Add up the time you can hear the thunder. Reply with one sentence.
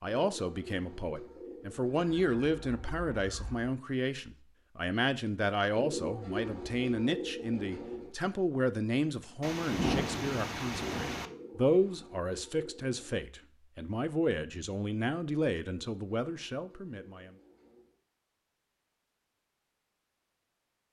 You can hear the thunder for 2 seconds altogether.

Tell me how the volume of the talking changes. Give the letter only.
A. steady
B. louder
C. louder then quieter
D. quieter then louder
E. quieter
A.